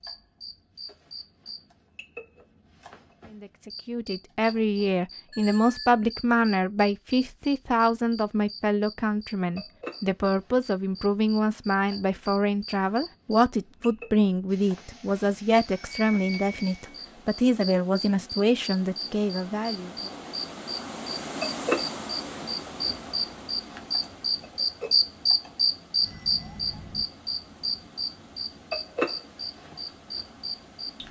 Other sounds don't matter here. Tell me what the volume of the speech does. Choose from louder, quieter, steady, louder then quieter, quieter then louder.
steady.